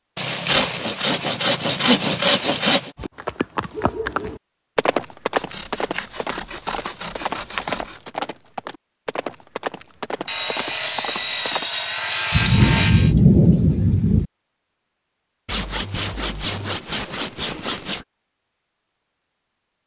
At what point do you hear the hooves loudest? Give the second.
5 s.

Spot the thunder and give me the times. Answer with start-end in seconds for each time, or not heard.
12.3-14.2.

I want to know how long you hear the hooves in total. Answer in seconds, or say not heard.
9 s.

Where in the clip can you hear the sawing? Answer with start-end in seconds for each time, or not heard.
0.1-2.9, 5.3-8.0, 10.2-13.2, 15.4-18.1.